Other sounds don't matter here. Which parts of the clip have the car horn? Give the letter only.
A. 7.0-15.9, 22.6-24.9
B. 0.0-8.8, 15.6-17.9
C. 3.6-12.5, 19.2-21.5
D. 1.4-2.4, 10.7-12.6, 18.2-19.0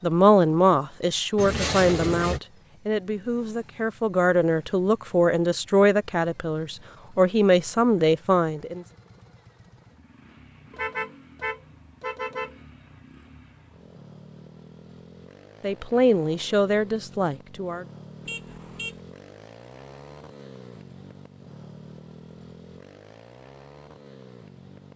D.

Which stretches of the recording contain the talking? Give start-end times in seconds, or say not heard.
0.0-8.8, 15.6-17.9.